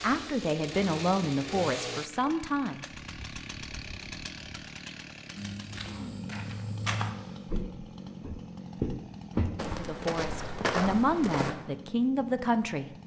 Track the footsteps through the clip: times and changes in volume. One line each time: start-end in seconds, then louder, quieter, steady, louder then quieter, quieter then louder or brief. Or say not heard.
5.3-11.6 louder.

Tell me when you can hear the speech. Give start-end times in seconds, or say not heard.
0.0-2.9, 9.7-13.0.